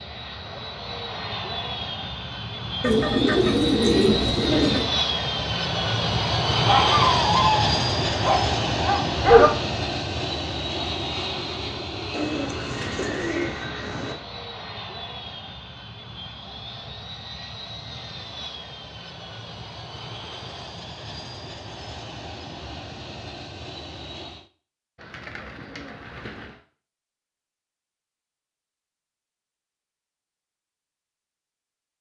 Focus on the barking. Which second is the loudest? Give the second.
9 s.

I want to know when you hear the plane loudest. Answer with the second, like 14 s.
7 s.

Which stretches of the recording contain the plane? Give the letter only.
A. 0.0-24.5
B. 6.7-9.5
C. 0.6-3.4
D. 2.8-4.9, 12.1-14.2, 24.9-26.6
A.